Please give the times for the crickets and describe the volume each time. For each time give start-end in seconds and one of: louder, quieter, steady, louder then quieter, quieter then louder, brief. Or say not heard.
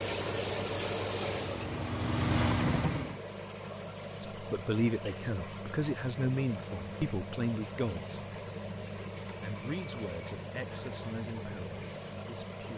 0.0-12.7 quieter.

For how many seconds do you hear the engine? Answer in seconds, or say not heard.
3 s.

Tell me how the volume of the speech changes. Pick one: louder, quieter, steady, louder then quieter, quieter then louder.
quieter.